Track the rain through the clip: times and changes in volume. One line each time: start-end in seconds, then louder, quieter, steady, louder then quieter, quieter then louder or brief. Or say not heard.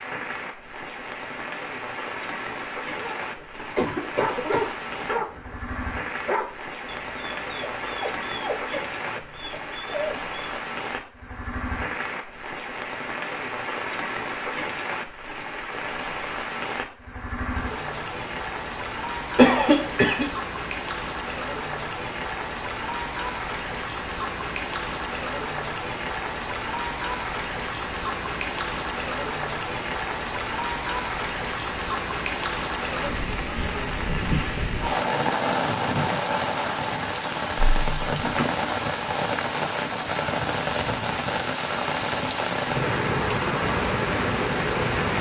0.0-45.1 louder.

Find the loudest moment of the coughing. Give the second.
20 s.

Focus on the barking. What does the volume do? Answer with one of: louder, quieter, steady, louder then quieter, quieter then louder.
quieter.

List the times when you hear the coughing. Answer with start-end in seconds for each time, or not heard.
3.5-4.7, 19.4-20.2, 37.5-38.5.